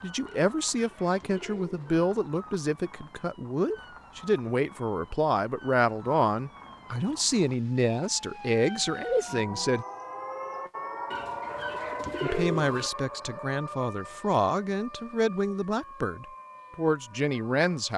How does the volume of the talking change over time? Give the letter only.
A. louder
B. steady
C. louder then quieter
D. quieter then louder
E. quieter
B.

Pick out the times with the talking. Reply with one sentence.
The talking can be heard from 0.0 to 9.8 s and from 12.2 to 17.9 s.